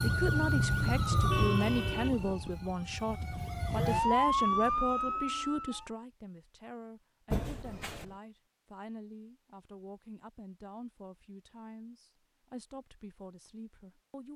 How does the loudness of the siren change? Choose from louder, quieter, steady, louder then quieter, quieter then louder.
quieter then louder.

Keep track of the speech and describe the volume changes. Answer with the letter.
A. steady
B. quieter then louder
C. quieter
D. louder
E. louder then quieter
C.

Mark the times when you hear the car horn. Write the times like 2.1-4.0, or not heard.
1.1-2.5, 7.3-8.2.